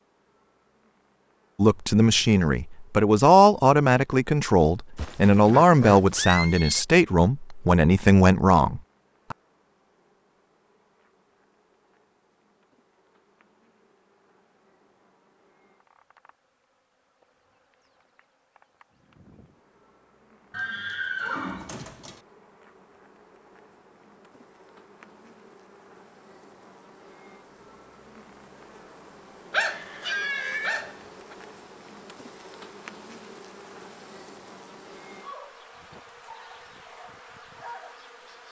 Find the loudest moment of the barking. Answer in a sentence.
The loudest moment of the barking is at 30 seconds.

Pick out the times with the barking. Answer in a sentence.
The barking can be heard from 29.5 to 31.4 s.